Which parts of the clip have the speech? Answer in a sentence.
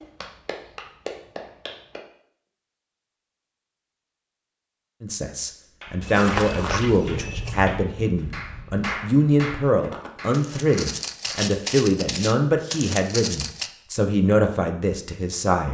You can hear the speech from 5.0 to 15.6 s.